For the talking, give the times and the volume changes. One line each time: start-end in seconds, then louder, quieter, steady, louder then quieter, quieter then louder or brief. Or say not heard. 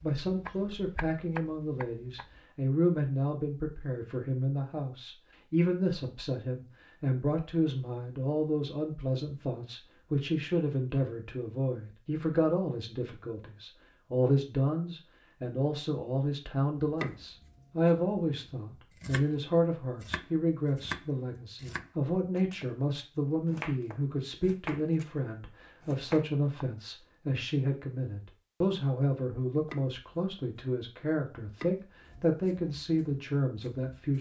0.0-34.1 steady.